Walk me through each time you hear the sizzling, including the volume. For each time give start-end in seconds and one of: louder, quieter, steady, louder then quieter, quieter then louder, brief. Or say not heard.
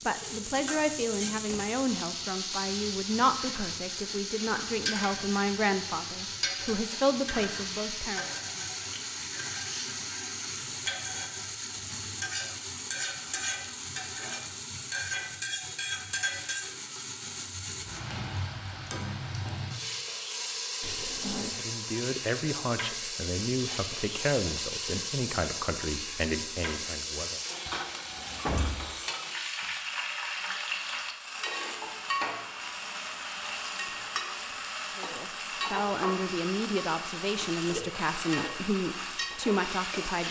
0.0-40.2 steady.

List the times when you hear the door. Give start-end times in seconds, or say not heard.
0.2-1.6, 20.8-21.5, 27.6-28.9.